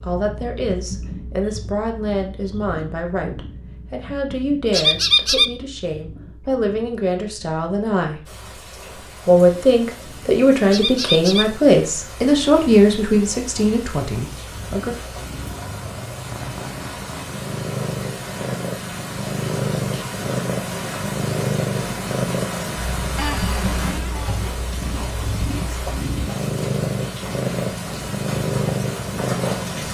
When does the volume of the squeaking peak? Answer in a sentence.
The loudest moment of the squeaking is at 5 seconds.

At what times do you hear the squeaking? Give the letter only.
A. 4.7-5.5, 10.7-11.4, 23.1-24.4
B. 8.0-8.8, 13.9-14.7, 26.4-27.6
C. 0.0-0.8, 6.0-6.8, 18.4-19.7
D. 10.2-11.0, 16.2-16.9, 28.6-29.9
A.